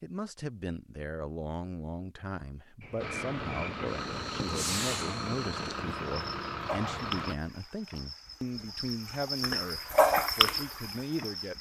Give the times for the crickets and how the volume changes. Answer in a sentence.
You can hear the crickets from 2.8 to 11.5 s, getting louder.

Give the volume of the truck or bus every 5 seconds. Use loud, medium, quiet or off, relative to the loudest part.
loud, loud, off.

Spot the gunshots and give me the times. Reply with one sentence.
The gunshots can be heard from 4.4 to 5.8 s.